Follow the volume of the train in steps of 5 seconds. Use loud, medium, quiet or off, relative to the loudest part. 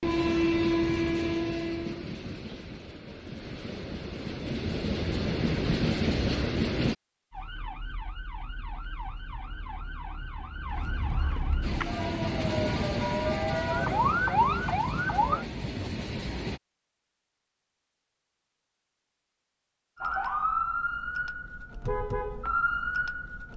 loud, loud, medium, medium, off.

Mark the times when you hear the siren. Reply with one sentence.
The siren can be heard from 7.3 to 15.4 s and from 19.9 to 23.5 s.